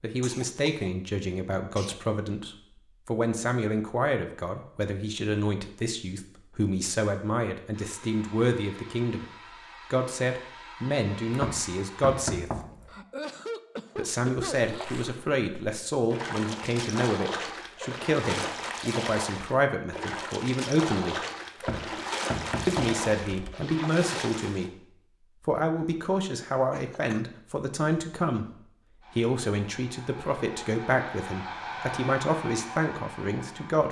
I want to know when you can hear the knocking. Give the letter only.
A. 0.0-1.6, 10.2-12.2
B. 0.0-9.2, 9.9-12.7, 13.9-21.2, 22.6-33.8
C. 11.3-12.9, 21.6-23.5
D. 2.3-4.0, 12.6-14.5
C.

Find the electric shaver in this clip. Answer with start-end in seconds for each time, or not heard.
not heard.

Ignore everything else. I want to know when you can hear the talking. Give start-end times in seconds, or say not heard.
0.0-9.2, 9.9-12.7, 13.9-21.2, 22.6-33.8.